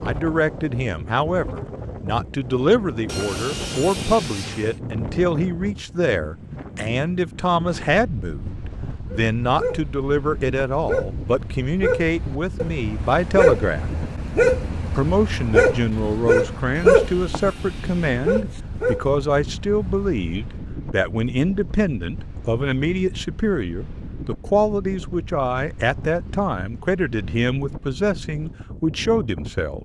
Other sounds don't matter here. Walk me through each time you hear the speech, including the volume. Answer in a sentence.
The speech can be heard from 0.0 to 13.8 s, at a steady volume; and from 14.9 to 29.8 s, at a steady volume.